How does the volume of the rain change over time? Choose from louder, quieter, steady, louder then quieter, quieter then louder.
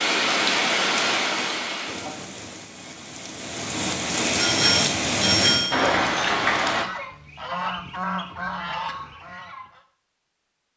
quieter then louder.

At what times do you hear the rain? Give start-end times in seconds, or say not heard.
0.0-6.8.